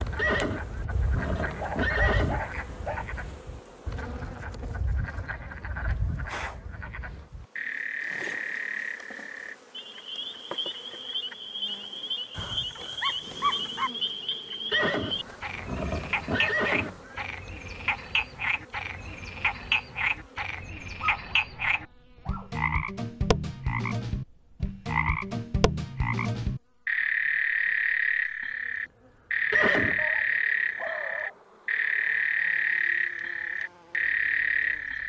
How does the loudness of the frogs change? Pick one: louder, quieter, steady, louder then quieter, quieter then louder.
louder.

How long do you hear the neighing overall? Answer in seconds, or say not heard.
5 s.